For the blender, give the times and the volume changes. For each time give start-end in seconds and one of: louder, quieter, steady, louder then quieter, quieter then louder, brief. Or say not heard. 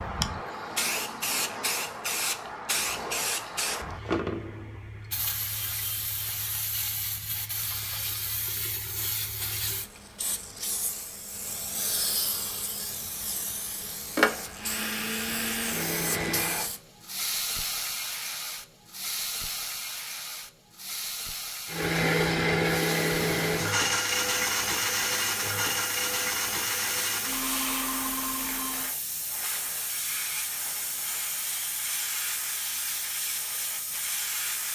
14.6-16.6 brief
21.6-28.9 quieter.